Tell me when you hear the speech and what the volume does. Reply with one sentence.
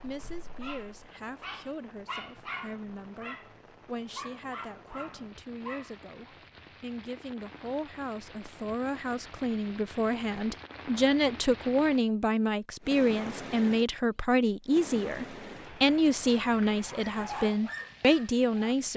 The speech can be heard from 0.0 to 18.9 s, getting louder.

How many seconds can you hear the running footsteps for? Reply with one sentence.
The running footsteps can't be heard in this clip.